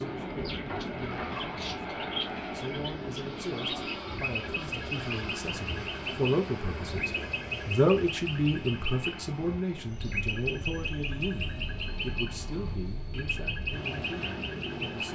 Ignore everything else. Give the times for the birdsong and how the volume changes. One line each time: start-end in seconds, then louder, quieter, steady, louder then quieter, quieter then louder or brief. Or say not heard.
0.0-15.1 steady.